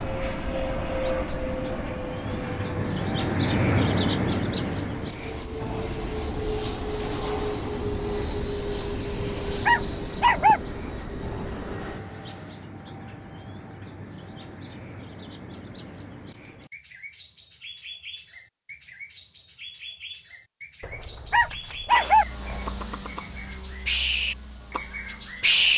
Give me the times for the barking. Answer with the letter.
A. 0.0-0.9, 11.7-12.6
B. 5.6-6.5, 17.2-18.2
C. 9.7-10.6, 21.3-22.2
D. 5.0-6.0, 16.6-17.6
C.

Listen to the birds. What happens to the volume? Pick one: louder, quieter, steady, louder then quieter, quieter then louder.
quieter then louder.